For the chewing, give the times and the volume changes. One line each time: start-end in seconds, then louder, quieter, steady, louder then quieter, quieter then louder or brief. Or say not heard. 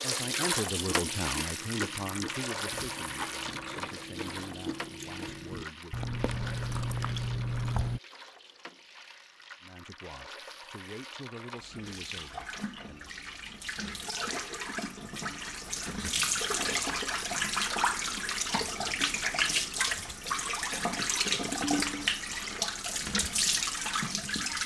0.1-8.0 louder.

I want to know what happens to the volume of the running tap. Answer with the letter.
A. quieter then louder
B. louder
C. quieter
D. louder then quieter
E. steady
A.